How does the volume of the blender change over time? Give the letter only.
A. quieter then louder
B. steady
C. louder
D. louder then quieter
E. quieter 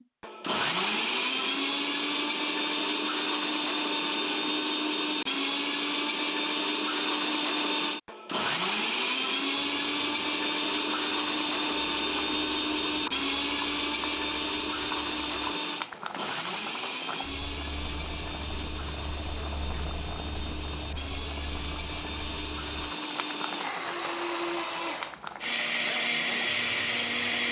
A.